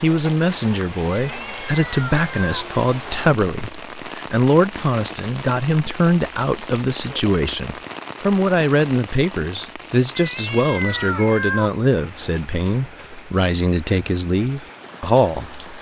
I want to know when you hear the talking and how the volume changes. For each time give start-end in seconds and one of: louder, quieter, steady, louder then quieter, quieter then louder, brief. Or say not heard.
0.0-15.6 steady.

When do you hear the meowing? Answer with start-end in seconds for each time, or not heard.
1.3-2.6, 10.2-11.7.